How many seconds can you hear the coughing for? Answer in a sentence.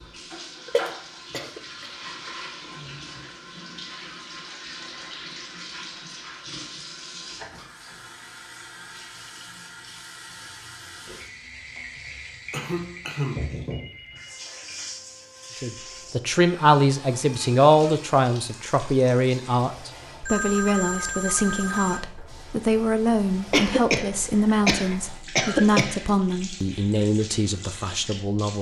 You can hear the coughing for 5 seconds altogether.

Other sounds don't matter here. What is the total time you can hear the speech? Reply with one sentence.
The speech can be heard for 13 seconds in total.